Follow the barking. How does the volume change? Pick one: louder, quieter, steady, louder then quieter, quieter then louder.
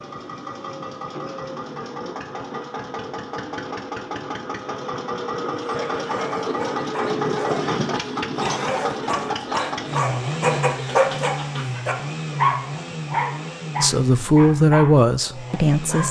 louder then quieter.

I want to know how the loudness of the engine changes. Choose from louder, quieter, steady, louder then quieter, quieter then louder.
louder then quieter.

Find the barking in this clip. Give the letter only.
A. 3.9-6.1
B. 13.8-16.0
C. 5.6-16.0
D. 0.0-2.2
C.